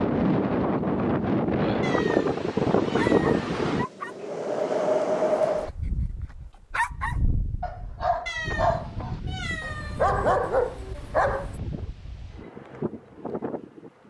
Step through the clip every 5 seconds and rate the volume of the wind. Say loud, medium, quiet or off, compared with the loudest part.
loud, medium, quiet.